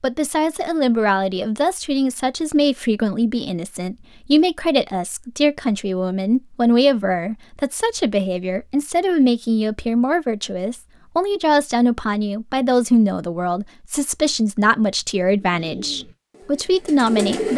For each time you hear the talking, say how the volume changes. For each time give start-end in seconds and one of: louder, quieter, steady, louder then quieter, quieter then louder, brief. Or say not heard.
0.0-17.5 steady.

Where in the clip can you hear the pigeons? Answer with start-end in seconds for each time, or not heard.
15.3-17.5.